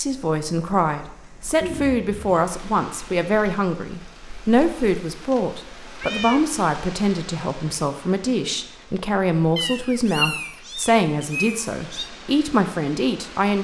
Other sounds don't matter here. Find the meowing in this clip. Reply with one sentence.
The meowing can be heard from 1.6 to 2.5 s, from 6.0 to 6.5 s and from 9.6 to 12.1 s.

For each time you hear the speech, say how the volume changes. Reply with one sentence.
You can hear the speech from 0.0 to 13.6 s, at a steady volume.